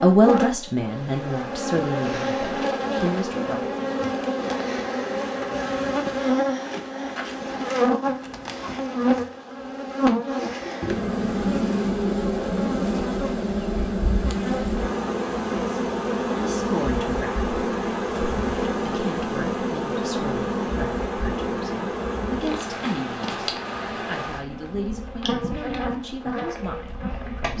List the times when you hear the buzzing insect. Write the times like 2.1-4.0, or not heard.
0.0-27.5.